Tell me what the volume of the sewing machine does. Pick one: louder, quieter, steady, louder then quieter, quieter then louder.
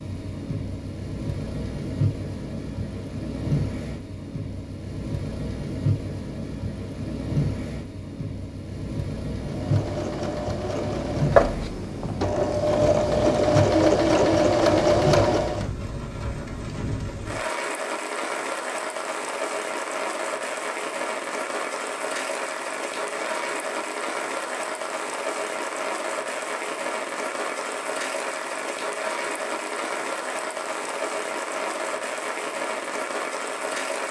louder.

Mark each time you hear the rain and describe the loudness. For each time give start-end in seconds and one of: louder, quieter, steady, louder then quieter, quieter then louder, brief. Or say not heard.
0.0-34.0 steady.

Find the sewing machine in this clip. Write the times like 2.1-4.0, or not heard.
9.4-15.7.